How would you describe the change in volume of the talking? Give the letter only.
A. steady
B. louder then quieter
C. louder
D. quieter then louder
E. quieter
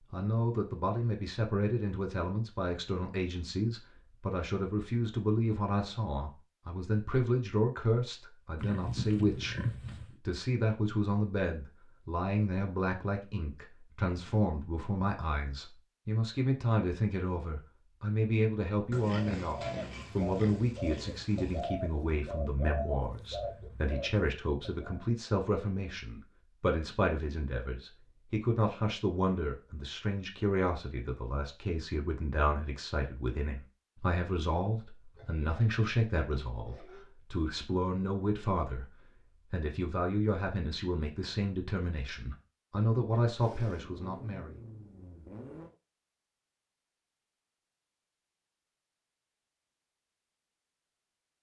A.